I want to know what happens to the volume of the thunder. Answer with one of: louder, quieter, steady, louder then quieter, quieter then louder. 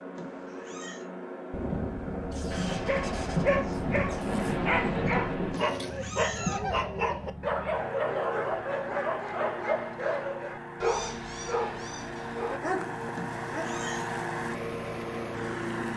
louder.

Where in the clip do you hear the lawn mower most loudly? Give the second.
14 s.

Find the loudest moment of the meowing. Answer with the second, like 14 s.
6 s.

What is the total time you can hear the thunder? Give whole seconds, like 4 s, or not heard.
4 s.